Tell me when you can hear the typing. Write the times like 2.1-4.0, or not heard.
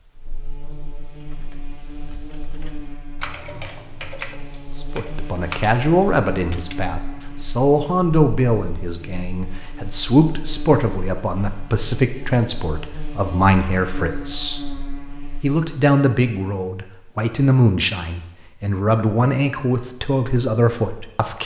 1.1-7.5.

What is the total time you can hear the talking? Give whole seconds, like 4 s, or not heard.
16 s.